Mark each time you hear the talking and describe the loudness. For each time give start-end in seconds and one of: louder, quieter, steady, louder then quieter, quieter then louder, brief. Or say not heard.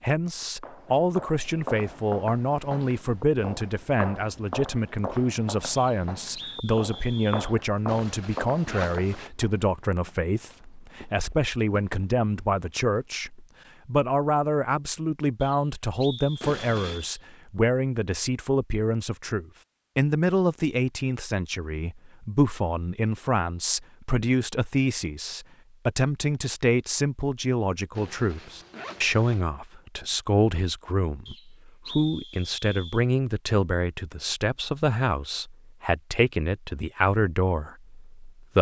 0.0-38.5 steady.